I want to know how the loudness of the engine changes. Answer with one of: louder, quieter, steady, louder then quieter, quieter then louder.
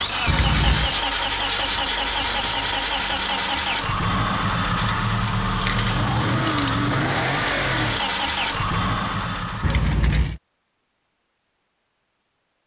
steady.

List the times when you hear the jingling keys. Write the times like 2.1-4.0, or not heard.
0.2-0.9, 4.8-6.8, 9.6-10.4.